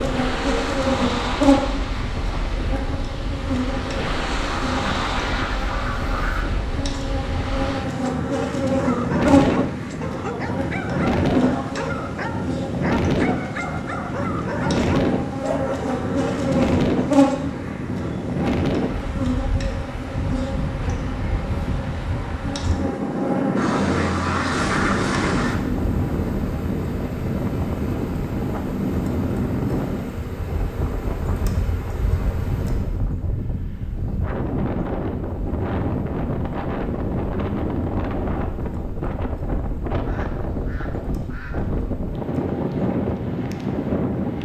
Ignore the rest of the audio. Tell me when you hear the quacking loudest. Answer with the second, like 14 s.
25 s.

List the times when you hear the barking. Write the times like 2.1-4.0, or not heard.
8.8-15.9.